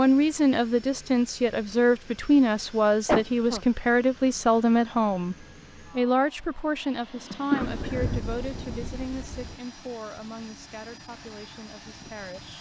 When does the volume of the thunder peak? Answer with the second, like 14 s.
8 s.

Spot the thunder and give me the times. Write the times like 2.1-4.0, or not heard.
7.6-9.6.